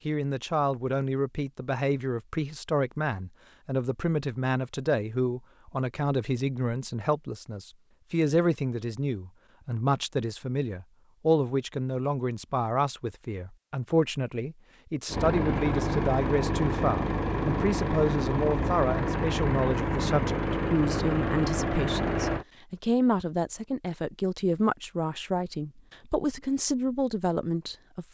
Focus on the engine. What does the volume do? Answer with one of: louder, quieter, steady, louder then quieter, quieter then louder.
steady.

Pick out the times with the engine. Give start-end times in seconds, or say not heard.
15.1-22.4.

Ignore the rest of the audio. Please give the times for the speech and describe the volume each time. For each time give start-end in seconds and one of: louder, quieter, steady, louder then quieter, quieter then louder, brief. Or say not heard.
0.1-28.0 steady.